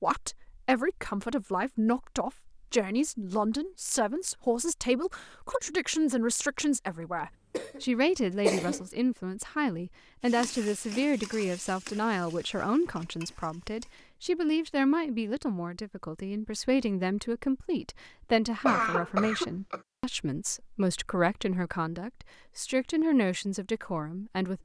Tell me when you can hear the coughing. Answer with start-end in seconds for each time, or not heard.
7.5-8.8, 18.6-19.8.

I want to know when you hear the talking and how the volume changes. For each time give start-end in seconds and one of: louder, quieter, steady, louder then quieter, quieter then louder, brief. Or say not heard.
0.0-24.5 steady.